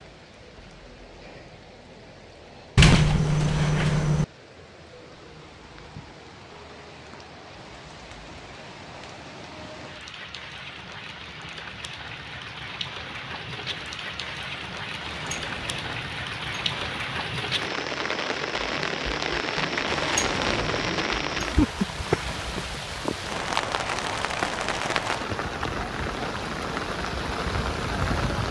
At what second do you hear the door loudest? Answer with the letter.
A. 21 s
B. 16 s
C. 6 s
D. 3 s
D.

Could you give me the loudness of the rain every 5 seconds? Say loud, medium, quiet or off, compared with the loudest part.
quiet, quiet, medium, loud, loud, loud.